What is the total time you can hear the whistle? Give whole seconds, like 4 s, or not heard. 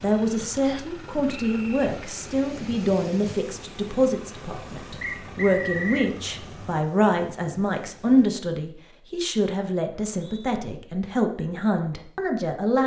3 s.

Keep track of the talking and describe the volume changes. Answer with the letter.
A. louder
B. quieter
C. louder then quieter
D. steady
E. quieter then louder
D.